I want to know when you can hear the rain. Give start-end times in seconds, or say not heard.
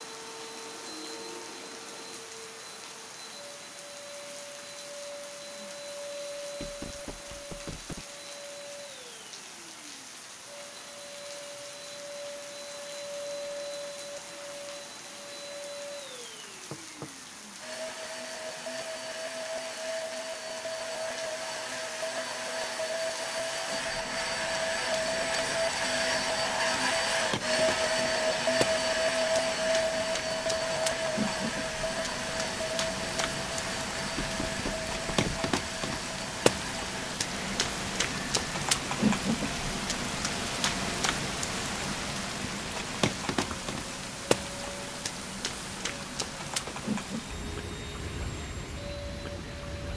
0.0-49.9.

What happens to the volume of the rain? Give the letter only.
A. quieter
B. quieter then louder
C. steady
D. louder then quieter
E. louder
E.